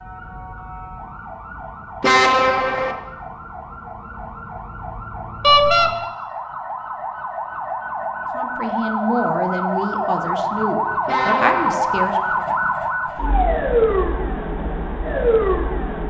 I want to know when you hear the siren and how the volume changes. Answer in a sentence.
You can hear the siren from 0.0 to 16.0 s, getting louder.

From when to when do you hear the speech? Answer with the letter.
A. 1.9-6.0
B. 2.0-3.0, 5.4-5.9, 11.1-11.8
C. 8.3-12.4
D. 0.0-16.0
C.